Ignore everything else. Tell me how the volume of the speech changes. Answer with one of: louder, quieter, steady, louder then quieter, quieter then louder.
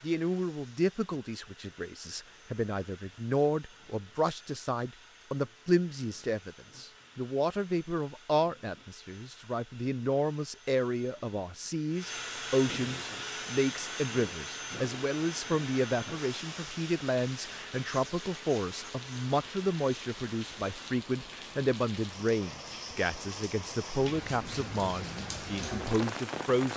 steady.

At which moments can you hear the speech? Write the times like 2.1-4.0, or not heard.
0.0-26.7.